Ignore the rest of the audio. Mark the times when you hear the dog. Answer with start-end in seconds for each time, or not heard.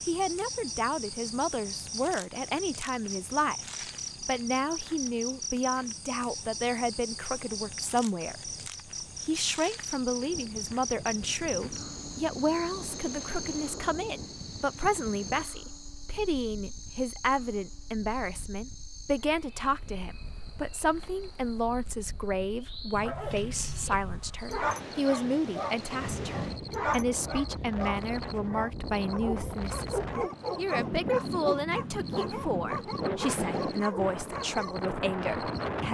22.9-34.8.